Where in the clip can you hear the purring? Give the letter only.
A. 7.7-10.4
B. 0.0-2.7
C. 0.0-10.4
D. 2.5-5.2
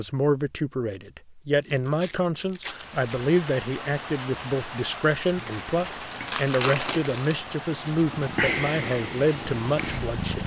A.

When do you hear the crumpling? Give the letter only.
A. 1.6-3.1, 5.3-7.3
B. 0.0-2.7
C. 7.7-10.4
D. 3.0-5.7
A.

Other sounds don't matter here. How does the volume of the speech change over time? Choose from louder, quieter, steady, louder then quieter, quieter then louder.
steady.